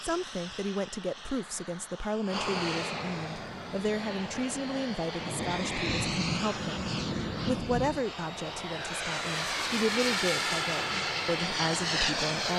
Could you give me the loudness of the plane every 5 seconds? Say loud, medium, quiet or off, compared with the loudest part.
medium, medium, loud.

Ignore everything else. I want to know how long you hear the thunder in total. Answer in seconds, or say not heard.
3 s.